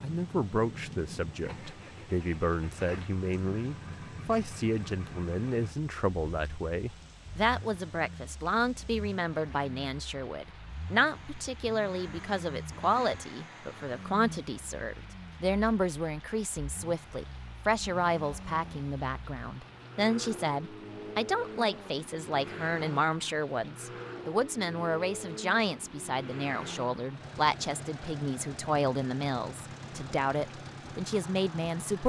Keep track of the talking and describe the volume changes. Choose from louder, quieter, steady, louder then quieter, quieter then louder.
steady.